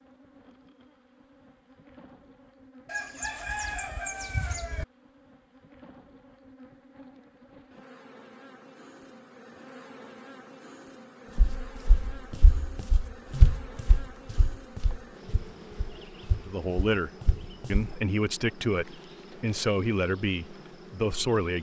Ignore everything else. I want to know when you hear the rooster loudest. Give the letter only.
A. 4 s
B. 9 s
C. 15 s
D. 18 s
A.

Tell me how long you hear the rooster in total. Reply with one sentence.
You can hear the rooster for 2 seconds altogether.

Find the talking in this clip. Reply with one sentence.
The talking can be heard from 16.4 to 17.1 s and from 17.7 to 21.5 s.